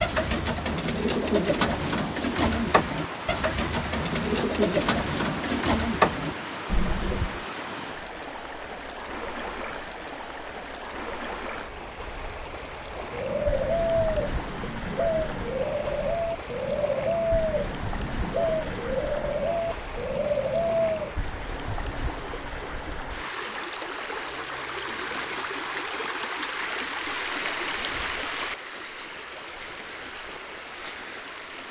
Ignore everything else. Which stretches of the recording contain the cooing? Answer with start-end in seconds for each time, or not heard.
0.0-7.5, 13.0-21.1.